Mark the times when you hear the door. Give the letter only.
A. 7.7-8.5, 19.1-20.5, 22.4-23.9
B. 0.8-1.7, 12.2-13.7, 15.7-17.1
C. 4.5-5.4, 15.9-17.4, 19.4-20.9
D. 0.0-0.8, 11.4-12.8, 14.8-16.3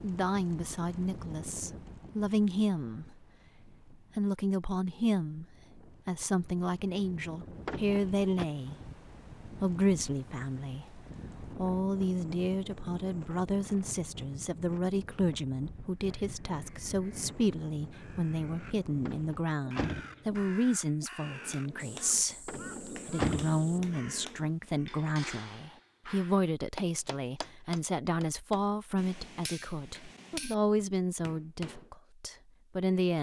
A.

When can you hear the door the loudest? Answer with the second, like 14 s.
23 s.